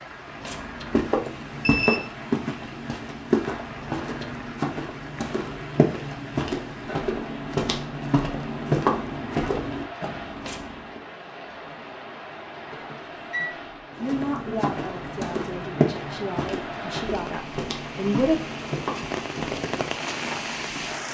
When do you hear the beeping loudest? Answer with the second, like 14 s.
2 s.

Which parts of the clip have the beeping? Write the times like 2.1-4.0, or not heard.
1.2-2.0, 12.7-13.5.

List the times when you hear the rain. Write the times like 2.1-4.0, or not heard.
0.0-21.0.